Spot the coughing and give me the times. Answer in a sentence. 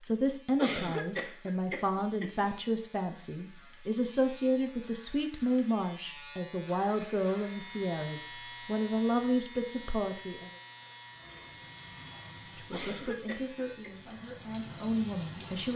The coughing can be heard from 0.6 to 2.5 s and from 12.7 to 13.9 s.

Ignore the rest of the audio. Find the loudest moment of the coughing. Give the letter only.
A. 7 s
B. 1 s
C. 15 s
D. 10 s
B.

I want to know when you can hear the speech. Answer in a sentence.
The speech can be heard from 0.0 to 10.5 s and from 12.6 to 15.7 s.